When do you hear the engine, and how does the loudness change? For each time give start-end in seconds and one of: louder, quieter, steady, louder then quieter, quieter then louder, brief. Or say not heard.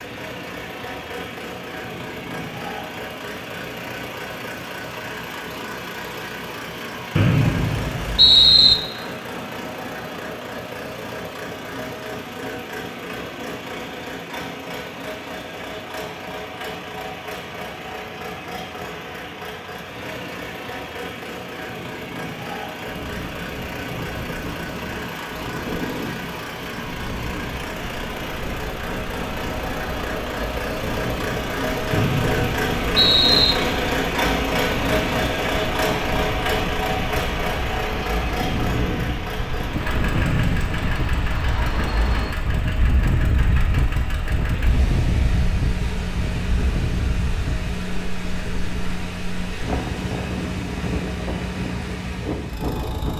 0.0-53.1 louder then quieter.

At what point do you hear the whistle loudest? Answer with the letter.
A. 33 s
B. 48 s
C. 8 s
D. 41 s
C.